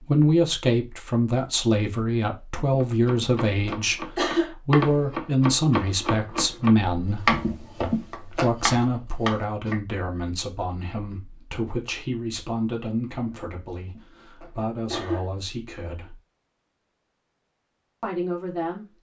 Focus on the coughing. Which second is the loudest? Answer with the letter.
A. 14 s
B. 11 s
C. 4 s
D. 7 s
C.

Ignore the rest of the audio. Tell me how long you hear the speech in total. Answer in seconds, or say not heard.
16 s.